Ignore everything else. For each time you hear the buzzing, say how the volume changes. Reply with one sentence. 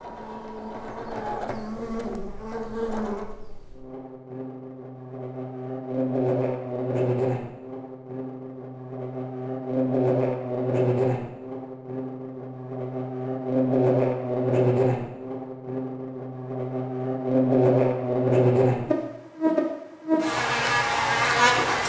The buzzing can be heard from 0.0 to 21.8 s, getting louder.